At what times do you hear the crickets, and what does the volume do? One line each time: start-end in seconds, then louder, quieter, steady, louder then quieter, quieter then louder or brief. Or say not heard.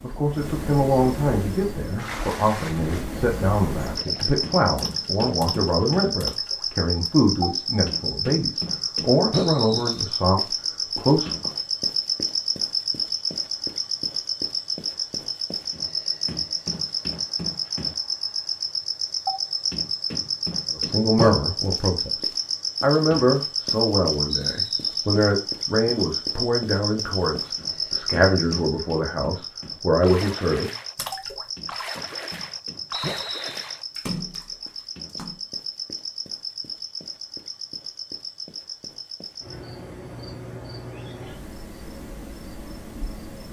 0.0-43.4 quieter.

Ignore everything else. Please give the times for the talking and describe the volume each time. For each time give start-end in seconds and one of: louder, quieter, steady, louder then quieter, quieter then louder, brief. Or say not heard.
0.0-11.5 steady
20.7-30.7 steady.